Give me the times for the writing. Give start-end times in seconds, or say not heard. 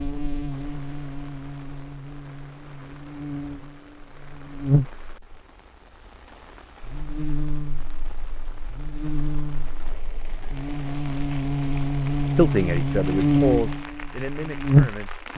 not heard.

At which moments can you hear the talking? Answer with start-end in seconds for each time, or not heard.
12.3-15.2.